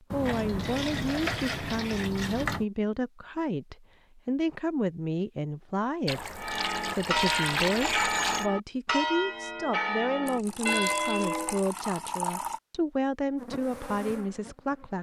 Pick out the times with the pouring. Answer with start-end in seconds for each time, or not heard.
0.1-2.6, 6.0-8.5, 10.2-12.6.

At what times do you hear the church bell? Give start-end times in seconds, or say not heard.
6.3-11.7.